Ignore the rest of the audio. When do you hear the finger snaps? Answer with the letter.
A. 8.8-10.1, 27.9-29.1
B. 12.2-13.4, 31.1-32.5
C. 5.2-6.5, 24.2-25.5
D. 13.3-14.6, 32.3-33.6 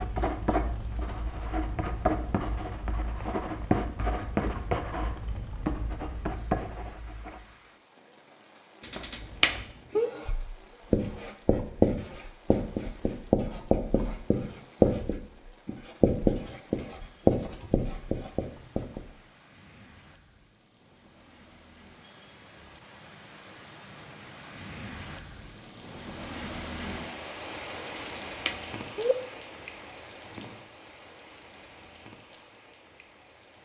A.